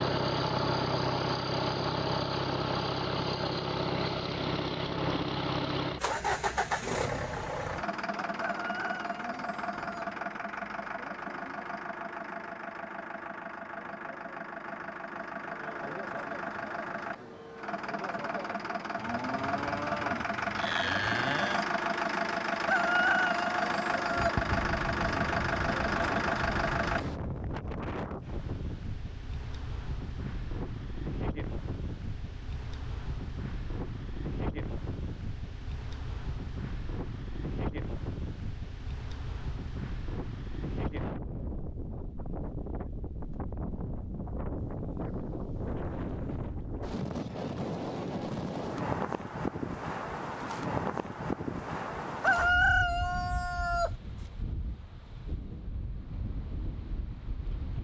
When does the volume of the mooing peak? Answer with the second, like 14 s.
21 s.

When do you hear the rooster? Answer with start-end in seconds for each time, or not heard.
8.4-10.1, 22.6-24.4, 52.2-53.9.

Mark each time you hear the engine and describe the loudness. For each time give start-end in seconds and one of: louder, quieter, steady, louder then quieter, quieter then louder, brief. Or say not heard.
0.0-27.1 quieter then louder.